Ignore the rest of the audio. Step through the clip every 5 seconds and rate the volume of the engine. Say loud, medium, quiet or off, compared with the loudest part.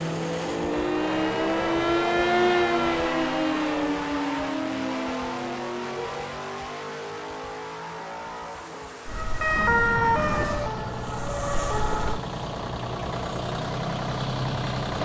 loud, medium, loud.